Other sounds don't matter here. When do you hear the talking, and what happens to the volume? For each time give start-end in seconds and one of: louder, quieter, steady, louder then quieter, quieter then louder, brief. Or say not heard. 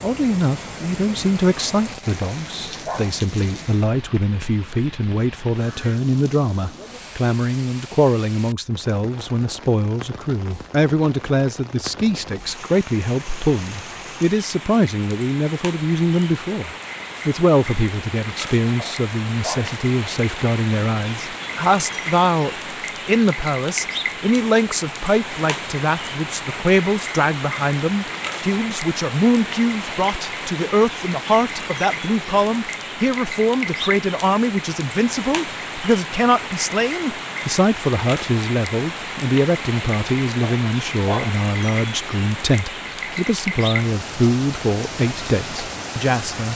0.0-46.4 steady.